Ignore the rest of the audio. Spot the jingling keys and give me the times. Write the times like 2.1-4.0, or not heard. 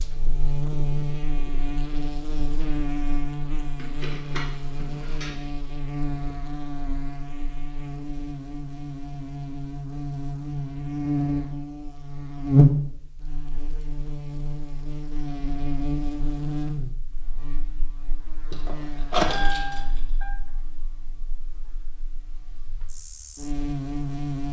3.8-5.3, 18.5-20.3.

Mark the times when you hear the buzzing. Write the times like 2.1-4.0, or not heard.
0.0-24.4.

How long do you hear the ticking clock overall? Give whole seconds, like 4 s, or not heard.
not heard.